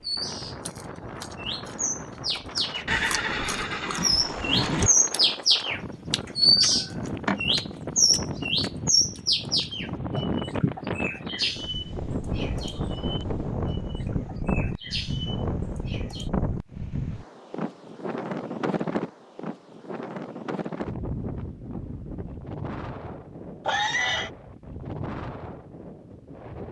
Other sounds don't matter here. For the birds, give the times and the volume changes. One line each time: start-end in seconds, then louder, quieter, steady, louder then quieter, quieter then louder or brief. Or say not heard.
0.0-16.3 louder then quieter.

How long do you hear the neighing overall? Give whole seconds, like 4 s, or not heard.
3 s.